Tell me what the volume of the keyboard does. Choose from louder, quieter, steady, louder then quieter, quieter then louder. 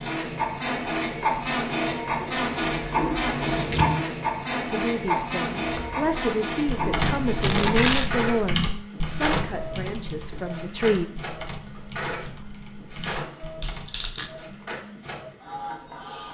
quieter.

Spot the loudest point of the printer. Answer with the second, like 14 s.
3 s.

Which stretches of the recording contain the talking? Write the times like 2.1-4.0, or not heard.
4.7-11.1.